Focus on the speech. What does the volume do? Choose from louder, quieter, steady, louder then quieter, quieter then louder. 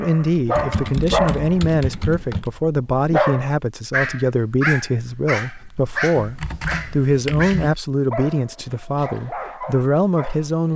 steady.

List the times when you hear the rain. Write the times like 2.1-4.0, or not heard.
not heard.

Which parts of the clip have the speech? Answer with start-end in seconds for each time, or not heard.
0.0-10.7.